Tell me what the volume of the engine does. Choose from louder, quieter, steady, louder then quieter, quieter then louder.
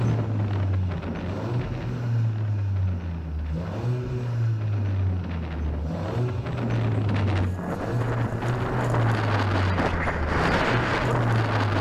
steady.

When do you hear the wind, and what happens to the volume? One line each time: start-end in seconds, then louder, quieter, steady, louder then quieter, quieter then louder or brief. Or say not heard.
0.0-11.7 quieter then louder.